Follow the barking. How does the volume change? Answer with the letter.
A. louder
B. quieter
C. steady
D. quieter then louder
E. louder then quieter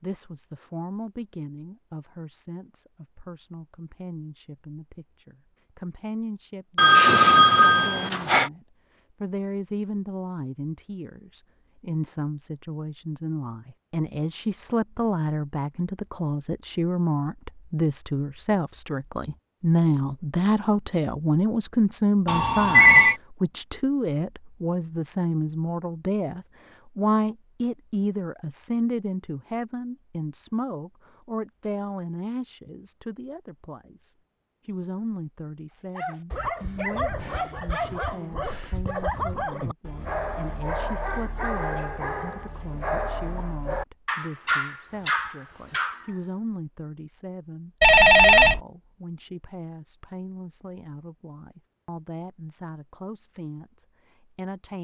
C.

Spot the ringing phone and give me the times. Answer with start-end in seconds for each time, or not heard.
6.8-8.5, 22.2-23.1, 47.8-48.6.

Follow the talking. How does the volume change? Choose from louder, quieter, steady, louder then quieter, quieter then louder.
louder then quieter.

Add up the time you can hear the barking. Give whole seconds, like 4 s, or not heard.
10 s.